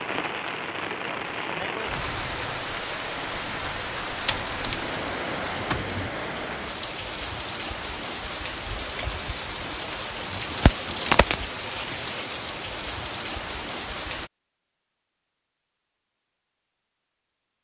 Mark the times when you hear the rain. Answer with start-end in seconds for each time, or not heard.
0.0-14.3.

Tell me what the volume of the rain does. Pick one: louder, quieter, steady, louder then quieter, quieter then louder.
steady.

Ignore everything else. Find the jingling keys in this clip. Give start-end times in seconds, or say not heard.
4.2-6.1, 10.5-11.4.